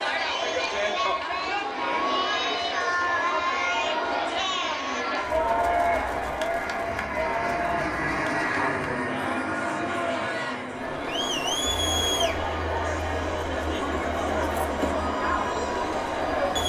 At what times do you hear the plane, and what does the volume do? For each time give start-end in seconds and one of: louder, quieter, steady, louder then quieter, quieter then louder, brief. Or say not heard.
0.0-16.6 louder then quieter.